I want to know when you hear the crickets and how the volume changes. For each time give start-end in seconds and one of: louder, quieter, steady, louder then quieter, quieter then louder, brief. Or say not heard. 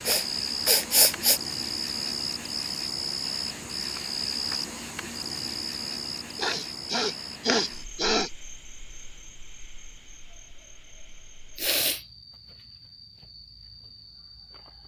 0.0-14.8 quieter.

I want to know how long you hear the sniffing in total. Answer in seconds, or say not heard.
4 s.